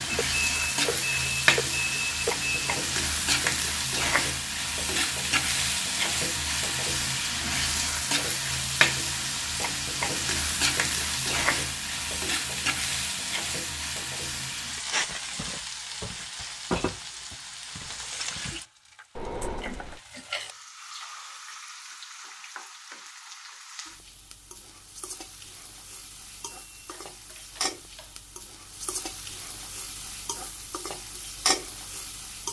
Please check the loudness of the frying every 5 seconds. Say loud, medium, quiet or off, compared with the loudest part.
loud, loud, loud, medium, quiet, quiet, medium.